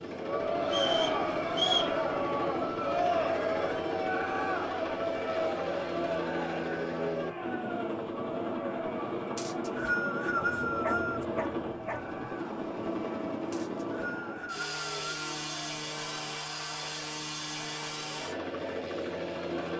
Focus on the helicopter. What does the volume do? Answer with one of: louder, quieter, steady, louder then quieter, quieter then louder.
steady.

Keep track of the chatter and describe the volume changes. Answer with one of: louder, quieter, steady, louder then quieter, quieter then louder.
quieter.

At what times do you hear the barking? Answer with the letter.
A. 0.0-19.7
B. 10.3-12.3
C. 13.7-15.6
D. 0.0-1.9
B.